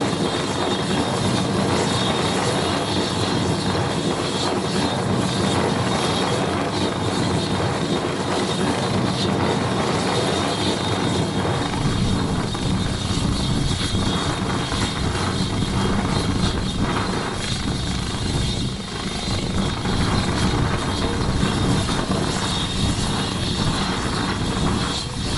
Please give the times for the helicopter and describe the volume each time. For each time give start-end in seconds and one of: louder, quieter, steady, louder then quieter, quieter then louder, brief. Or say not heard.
0.0-25.3 steady.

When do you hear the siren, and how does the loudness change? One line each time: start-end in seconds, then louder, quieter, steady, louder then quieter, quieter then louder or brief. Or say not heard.
not heard.